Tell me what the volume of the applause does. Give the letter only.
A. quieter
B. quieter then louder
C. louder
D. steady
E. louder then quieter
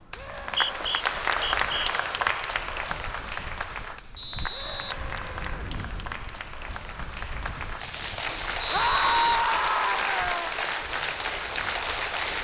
B.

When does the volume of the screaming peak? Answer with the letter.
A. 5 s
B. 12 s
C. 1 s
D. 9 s
D.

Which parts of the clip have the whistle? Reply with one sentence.
The whistle can be heard from 0.1 to 1.9 s, from 4.2 to 5.0 s and from 8.6 to 9.4 s.